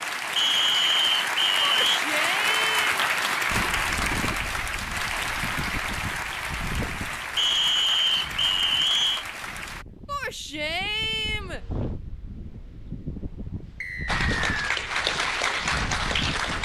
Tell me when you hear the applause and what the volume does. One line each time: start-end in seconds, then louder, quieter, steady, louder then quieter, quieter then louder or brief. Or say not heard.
0.0-9.8 quieter
14.1-16.5 brief.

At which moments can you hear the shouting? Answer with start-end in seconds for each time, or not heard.
1.6-2.9, 10.1-11.6.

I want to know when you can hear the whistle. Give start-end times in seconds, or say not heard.
0.3-2.0, 7.3-9.2, 13.8-14.8.